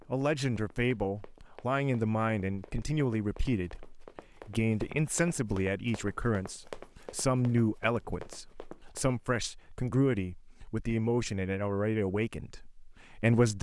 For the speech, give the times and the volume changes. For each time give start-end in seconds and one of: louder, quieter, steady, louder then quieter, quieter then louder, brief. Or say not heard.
0.1-13.5 steady.